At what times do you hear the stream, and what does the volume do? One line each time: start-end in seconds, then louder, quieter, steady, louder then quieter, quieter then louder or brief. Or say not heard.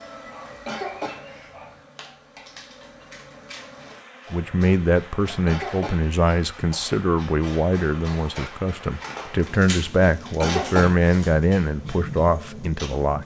not heard.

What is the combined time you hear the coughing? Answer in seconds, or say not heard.
3 s.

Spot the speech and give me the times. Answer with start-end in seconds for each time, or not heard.
4.3-13.2.